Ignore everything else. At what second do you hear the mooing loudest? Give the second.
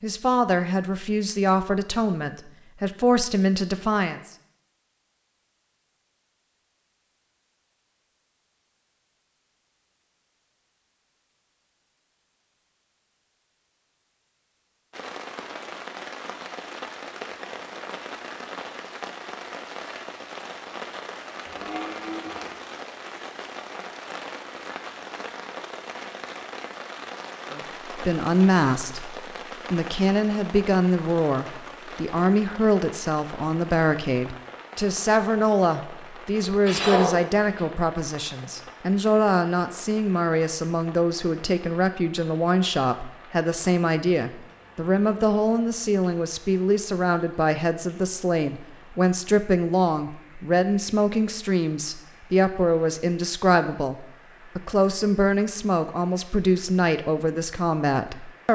37 s.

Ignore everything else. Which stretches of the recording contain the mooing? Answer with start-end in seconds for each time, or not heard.
21.4-22.5, 36.6-37.7.